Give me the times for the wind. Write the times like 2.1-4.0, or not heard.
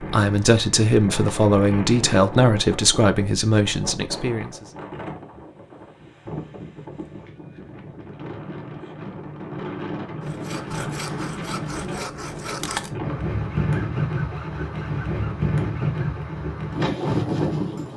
0.0-17.9.